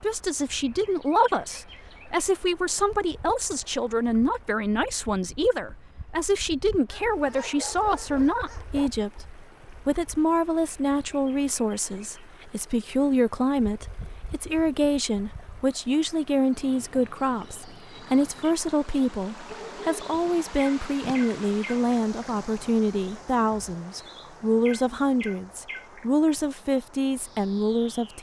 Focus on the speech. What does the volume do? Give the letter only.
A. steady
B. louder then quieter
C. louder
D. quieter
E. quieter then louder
A.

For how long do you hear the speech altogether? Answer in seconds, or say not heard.
28 s.